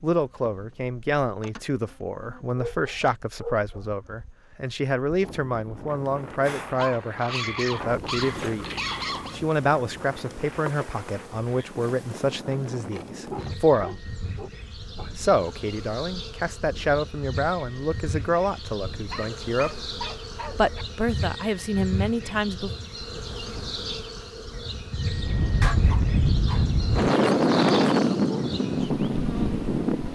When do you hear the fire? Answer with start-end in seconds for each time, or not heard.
not heard.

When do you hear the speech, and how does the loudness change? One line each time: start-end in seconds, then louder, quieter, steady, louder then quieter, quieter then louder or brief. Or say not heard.
0.0-8.7 steady
9.3-14.0 quieter
15.2-19.9 louder then quieter
20.5-22.7 brief.